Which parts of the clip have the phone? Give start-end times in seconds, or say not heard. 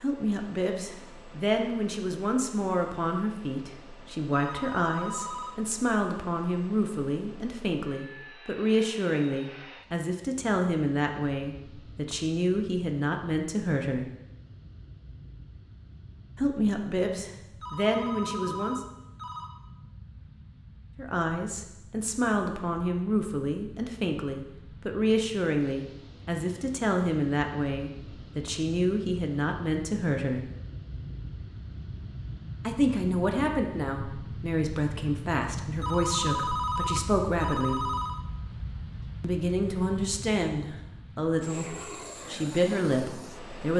4.3-5.5, 17.6-19.5, 35.8-38.2.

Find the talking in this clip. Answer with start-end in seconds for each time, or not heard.
0.0-14.1, 16.4-18.8, 20.9-30.4, 32.6-37.9, 39.2-43.7.